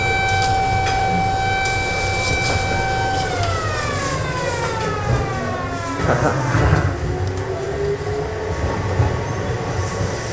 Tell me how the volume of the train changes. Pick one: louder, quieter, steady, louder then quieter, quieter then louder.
steady.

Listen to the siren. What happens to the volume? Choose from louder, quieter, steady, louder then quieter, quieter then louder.
quieter.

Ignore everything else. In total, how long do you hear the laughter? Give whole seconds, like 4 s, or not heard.
2 s.